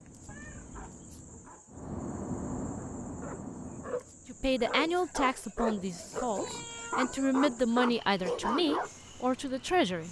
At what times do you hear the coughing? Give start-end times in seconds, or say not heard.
not heard.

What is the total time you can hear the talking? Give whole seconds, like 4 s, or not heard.
6 s.